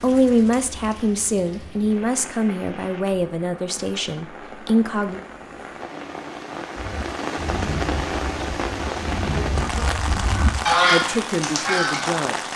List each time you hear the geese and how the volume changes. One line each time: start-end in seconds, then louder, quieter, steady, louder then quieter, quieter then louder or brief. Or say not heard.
6.8-12.2 quieter then louder.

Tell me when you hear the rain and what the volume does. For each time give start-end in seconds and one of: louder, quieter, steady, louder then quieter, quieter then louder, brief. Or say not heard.
0.0-12.5 louder.